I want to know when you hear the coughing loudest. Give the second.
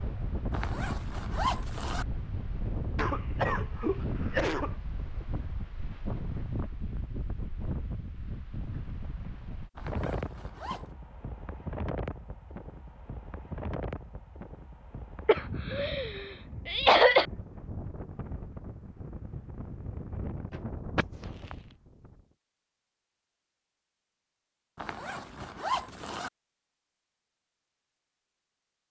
17 s.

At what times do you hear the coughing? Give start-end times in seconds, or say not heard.
3.0-4.8, 15.2-17.2, 20.5-21.6.